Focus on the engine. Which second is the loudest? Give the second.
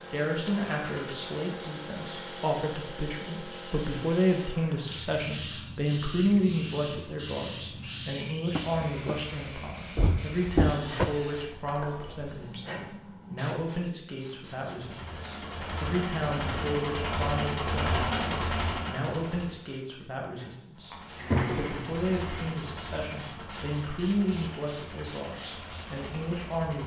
18 s.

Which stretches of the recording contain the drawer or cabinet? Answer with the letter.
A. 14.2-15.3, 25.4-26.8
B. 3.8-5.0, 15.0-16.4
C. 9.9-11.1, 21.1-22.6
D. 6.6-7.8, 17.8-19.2
C.